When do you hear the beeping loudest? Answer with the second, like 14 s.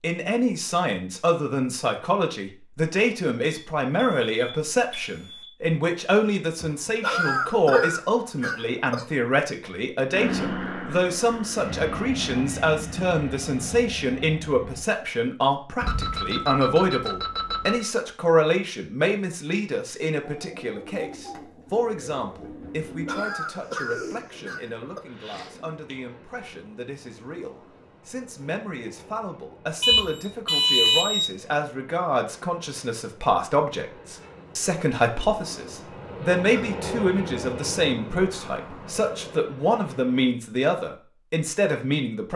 31 s.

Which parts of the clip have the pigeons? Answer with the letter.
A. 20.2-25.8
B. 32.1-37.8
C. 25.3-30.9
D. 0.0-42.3
A.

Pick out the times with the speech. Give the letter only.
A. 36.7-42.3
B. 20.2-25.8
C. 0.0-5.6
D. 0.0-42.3
D.